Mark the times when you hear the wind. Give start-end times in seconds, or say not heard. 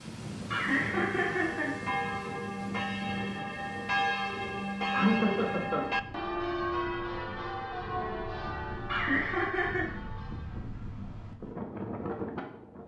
0.0-12.8.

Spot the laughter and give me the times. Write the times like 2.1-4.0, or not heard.
0.5-1.9, 4.9-5.9, 8.8-9.9.